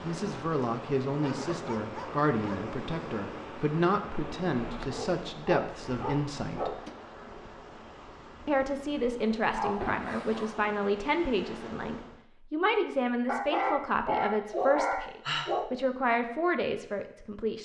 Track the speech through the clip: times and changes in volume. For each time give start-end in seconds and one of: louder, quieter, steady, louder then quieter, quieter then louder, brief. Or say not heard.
0.0-6.8 steady
8.4-17.5 steady.